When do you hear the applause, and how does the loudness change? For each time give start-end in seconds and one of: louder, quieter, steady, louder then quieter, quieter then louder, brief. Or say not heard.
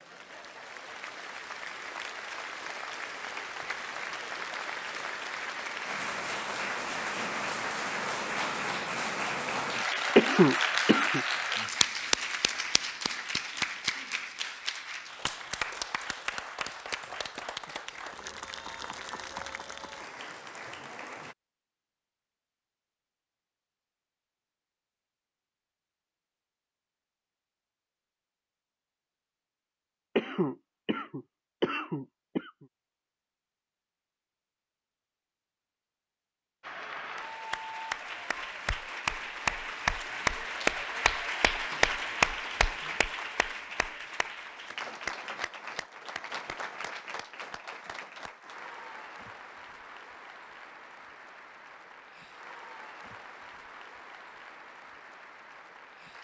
0.0-21.4 louder then quieter
36.6-56.1 quieter.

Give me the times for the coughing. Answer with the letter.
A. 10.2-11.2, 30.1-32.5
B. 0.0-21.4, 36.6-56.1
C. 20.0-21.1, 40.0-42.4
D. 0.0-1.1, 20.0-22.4
A.